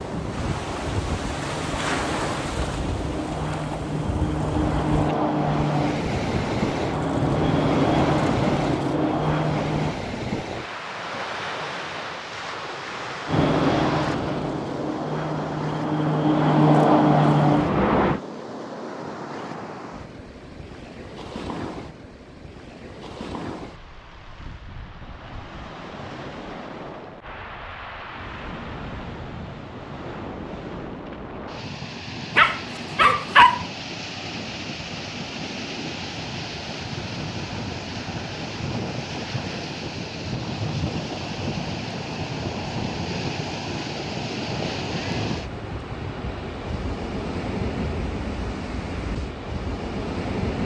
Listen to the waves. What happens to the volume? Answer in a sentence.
The loudness of the waves goes down, then up.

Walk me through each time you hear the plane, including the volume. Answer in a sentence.
The plane can be heard from 0.0 to 10.0 s, getting louder; and from 13.2 to 18.2 s, getting quieter then louder.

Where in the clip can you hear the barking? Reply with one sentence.
You can hear the barking from 32.4 to 33.6 s.